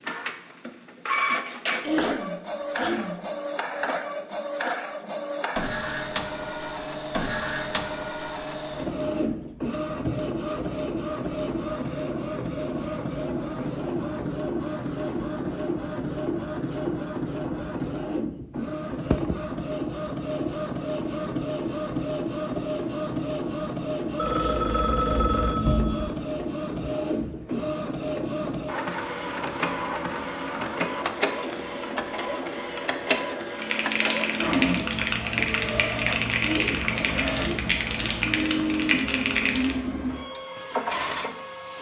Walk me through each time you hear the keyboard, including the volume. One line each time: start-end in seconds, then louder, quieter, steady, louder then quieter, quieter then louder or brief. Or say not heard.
33.5-39.8 steady.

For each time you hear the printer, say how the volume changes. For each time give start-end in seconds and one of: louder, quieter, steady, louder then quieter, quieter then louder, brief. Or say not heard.
0.0-41.7 steady.